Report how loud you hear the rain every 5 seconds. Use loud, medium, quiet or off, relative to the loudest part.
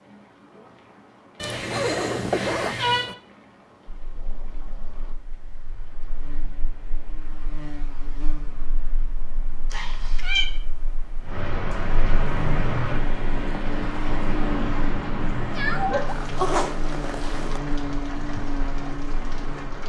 quiet, quiet, loud, loud.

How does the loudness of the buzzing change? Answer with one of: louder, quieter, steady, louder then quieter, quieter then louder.
louder.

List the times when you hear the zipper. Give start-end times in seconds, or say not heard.
1.6-3.1, 16.1-17.6.